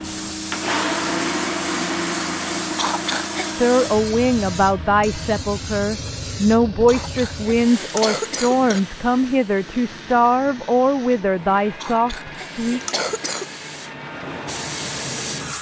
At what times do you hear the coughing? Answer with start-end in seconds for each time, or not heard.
2.7-3.5, 6.8-8.8, 11.7-13.5.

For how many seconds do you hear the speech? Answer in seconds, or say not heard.
9 s.